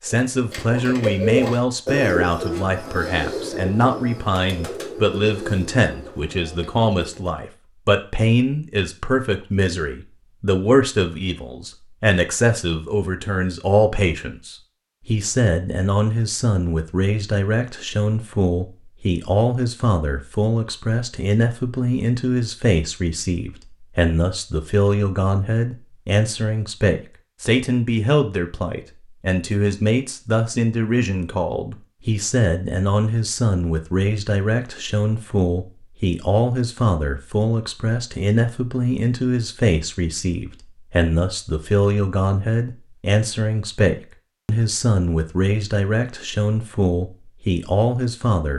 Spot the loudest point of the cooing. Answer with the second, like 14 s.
1 s.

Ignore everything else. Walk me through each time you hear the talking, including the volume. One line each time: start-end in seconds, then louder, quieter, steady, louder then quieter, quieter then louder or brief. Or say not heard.
0.0-48.5 steady.